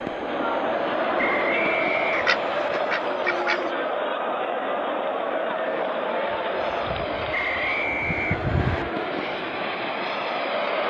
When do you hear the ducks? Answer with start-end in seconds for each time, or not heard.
2.1-3.6, 6.5-8.9.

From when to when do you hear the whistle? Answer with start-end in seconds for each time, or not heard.
1.1-2.7, 7.3-8.8.